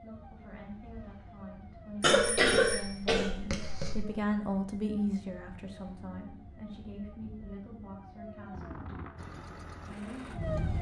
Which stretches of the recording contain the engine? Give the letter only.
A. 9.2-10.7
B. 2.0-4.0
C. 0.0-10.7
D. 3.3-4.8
A.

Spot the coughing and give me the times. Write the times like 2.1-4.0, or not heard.
2.0-4.0.